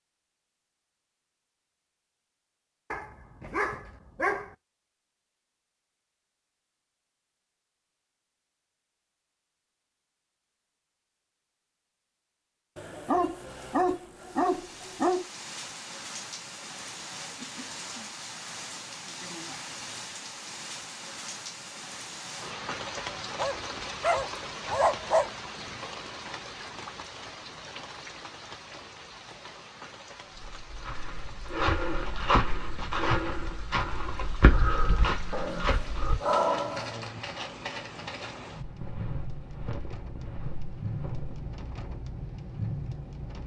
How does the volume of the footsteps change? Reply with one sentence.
The loudness of the footsteps goes down.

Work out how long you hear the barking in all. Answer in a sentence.
You can hear the barking for 8 seconds altogether.